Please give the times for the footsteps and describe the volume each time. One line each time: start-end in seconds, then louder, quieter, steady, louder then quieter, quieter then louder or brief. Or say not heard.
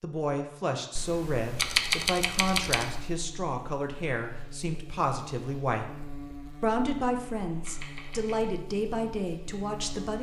not heard.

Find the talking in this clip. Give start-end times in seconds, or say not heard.
0.0-5.9, 6.6-10.1.